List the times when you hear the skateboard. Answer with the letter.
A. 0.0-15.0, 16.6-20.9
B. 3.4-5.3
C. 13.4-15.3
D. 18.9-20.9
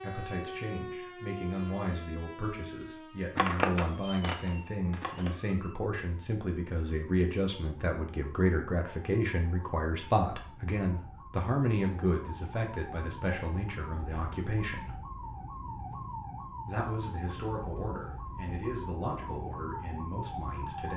B.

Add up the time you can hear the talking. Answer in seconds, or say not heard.
19 s.